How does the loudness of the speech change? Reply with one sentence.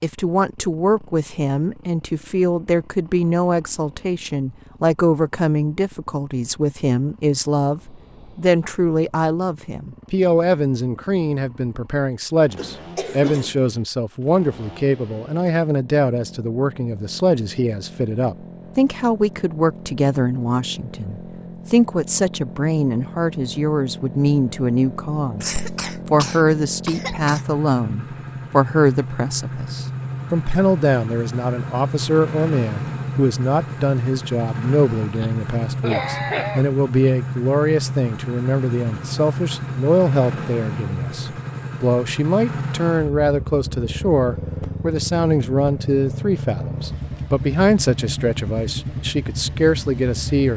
The volume of the speech stays about the same.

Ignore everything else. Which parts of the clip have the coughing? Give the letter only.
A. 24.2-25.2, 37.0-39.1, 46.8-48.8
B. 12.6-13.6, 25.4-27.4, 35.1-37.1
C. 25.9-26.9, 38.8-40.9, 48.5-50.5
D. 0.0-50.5
B.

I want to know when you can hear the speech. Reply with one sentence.
You can hear the speech from 0.0 to 50.5 s.